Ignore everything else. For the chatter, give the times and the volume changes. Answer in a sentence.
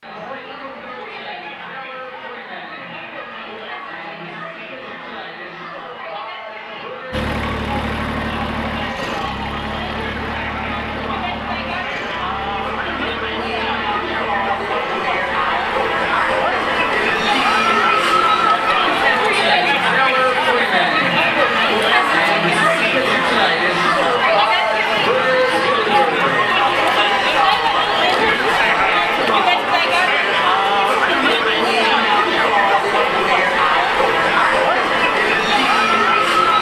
The chatter can be heard from 0.0 to 36.5 s, getting louder.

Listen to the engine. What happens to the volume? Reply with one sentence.
The loudness of the engine goes down.